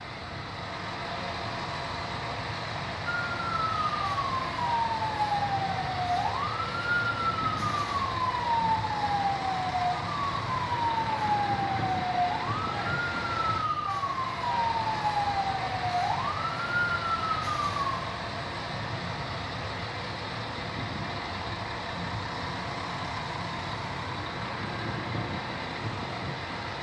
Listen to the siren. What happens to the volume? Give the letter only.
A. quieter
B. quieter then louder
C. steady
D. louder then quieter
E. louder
C.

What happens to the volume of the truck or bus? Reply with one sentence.
The loudness of the truck or bus stays about the same.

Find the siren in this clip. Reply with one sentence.
The siren can be heard from 3.0 to 18.0 s.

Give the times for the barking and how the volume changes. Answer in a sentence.
You can't hear the barking here.